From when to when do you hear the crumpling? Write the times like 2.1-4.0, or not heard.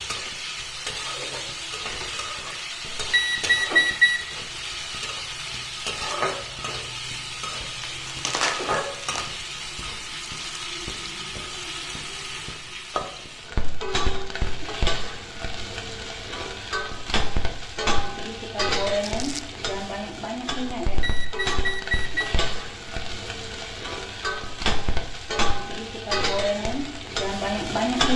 7.8-9.3, 19.0-19.6.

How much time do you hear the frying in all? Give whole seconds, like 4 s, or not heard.
28 s.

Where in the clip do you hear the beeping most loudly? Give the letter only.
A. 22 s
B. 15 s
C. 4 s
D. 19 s
C.